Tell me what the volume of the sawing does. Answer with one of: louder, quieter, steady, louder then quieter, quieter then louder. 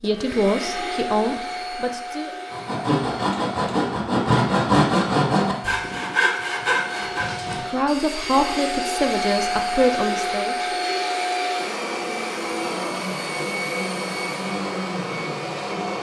quieter.